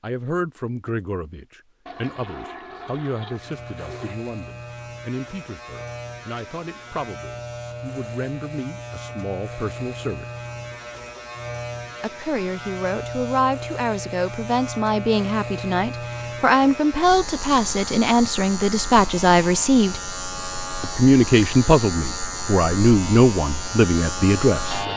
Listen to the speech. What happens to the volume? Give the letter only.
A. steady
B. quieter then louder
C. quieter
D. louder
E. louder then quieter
D.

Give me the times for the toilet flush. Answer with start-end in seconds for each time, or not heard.
1.9-4.2.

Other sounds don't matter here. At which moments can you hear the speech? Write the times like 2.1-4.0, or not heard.
0.0-10.2, 12.0-20.0, 20.8-24.8.